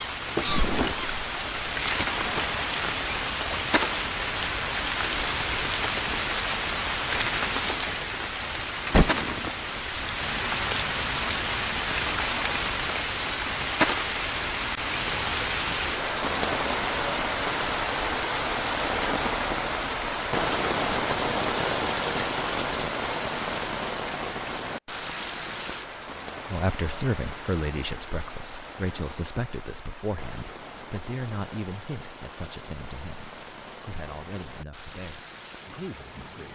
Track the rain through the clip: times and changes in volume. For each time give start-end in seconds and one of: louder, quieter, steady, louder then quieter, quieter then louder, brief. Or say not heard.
0.0-36.5 quieter.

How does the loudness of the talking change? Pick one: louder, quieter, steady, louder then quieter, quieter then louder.
quieter.